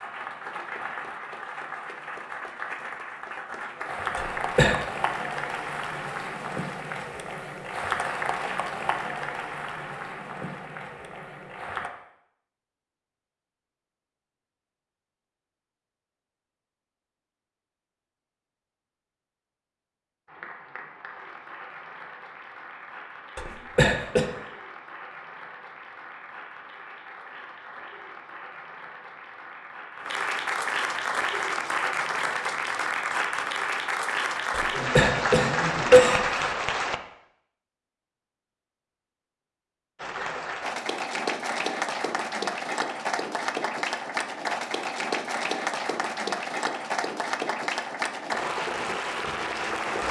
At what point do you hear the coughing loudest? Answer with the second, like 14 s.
36 s.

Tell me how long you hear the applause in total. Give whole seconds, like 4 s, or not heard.
39 s.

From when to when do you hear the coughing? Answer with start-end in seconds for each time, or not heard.
4.2-4.8, 23.4-24.2, 34.5-36.5.